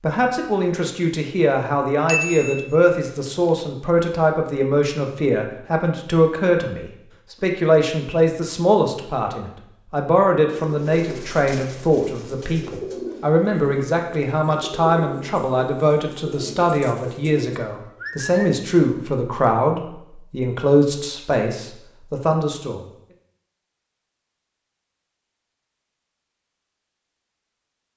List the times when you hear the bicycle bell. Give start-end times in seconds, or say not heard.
2.0-3.6.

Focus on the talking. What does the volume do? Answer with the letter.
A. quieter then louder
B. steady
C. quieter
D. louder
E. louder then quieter
B.